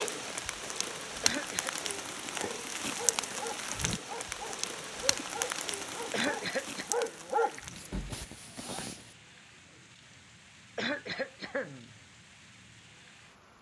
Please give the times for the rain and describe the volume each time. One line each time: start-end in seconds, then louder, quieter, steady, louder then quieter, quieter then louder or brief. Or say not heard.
0.0-13.5 quieter.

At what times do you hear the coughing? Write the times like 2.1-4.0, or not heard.
1.2-1.8, 6.1-6.8, 10.8-11.9.